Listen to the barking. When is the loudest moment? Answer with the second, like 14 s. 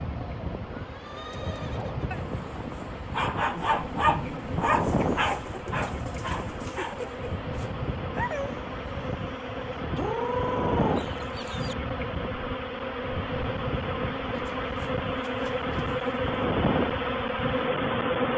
4 s.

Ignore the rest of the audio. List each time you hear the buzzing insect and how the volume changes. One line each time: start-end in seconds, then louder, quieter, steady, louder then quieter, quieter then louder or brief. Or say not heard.
0.0-18.3 louder.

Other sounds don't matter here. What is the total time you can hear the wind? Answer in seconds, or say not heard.
18 s.